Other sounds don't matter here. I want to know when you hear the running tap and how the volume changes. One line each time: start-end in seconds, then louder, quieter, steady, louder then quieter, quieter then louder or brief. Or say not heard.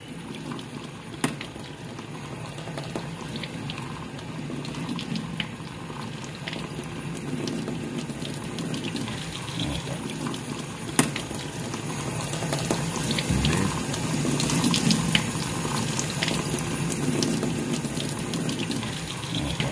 0.0-19.6 louder.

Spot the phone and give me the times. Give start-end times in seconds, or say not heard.
13.2-13.7.